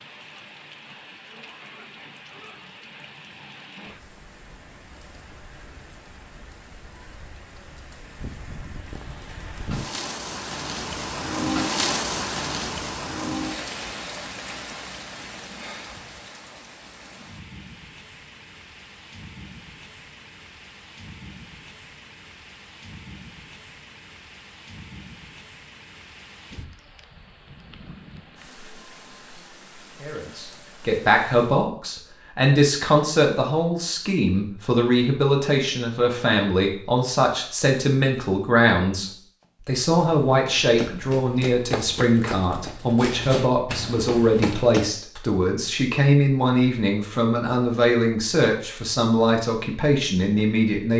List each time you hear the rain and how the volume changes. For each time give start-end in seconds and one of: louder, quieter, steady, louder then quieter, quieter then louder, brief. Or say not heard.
0.0-31.7 louder then quieter.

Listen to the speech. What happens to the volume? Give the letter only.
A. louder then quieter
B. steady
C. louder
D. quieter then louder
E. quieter
B.